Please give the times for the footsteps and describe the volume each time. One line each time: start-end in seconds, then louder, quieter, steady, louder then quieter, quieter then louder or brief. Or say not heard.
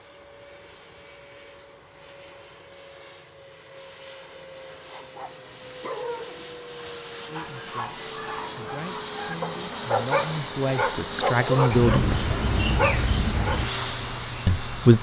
not heard.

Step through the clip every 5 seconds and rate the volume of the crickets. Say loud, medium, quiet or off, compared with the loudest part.
off, medium, loud.